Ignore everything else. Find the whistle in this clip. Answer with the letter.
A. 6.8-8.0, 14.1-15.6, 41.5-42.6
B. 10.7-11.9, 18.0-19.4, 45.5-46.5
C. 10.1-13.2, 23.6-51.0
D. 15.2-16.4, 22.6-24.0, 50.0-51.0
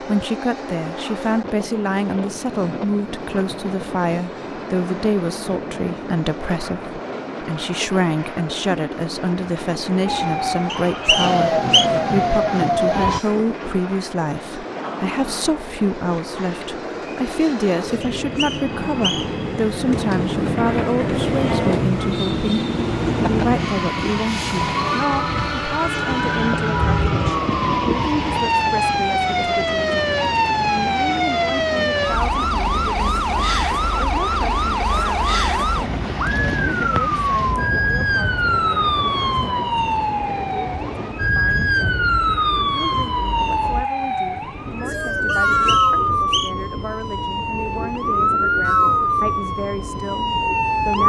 B.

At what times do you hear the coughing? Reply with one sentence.
You can't hear the coughing here.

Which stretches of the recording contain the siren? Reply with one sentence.
You can hear the siren from 10.1 to 13.2 s and from 23.6 to 51.0 s.